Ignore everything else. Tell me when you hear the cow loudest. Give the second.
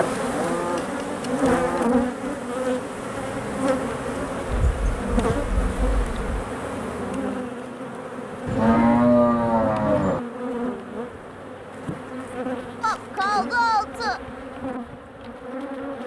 9 s.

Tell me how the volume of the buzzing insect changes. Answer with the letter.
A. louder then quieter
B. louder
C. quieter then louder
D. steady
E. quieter
E.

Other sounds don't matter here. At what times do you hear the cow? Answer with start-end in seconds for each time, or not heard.
0.2-2.0, 4.5-6.5, 8.4-10.2, 12.8-14.2.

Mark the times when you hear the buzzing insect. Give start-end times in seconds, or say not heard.
0.0-16.0.